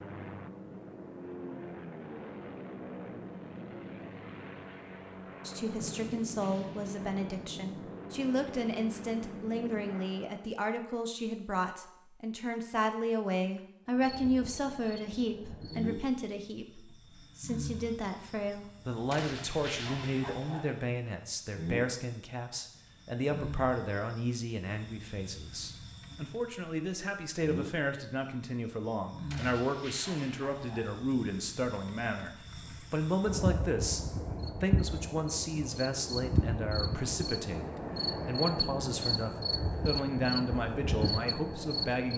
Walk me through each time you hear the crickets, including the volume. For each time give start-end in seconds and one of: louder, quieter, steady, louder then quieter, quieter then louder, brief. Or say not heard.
13.9-42.1 louder.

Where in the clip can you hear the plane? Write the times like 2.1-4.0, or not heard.
0.0-10.5.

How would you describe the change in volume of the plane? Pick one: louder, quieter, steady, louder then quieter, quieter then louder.
steady.